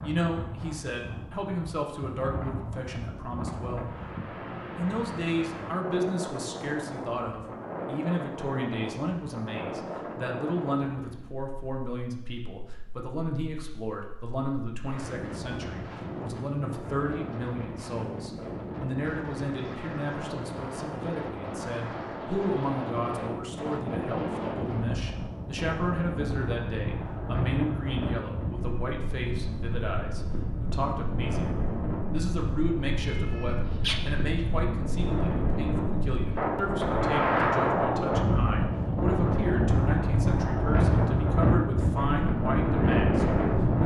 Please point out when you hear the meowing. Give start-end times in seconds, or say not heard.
33.0-34.5.